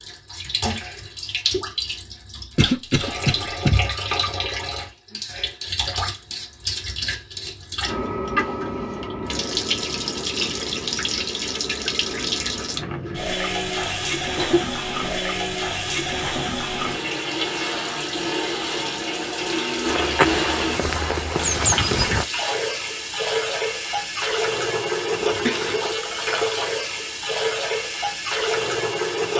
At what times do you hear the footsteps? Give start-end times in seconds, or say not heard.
19.8-22.2.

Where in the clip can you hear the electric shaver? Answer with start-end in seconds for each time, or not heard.
not heard.